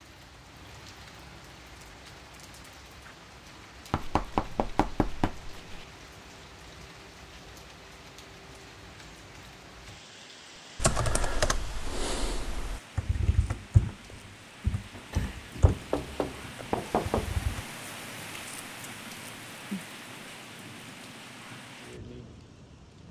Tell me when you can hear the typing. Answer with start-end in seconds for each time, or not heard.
10.8-15.8, 16.6-17.6.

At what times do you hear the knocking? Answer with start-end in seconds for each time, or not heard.
3.9-5.8, 15.1-17.3.